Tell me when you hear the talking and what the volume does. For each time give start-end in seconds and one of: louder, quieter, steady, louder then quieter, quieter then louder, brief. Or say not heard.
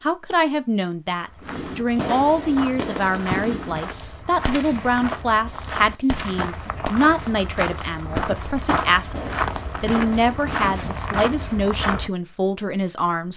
0.0-13.3 steady.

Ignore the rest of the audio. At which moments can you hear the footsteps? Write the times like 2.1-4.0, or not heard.
1.2-12.1.